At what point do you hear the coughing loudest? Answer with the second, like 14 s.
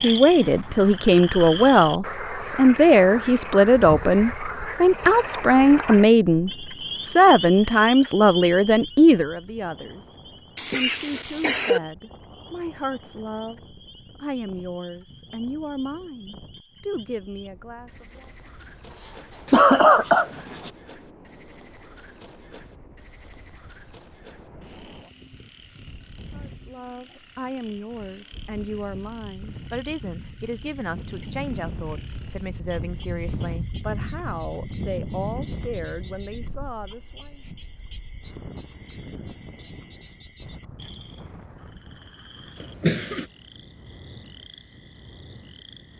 20 s.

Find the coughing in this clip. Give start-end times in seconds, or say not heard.
10.6-11.8, 18.9-20.7, 42.6-43.2.